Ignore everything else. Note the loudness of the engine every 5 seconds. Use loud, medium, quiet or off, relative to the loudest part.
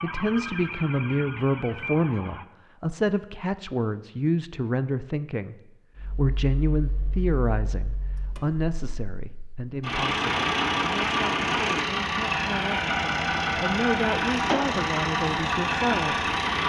off, quiet, loud, loud.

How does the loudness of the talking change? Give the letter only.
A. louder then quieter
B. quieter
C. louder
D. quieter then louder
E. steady
D.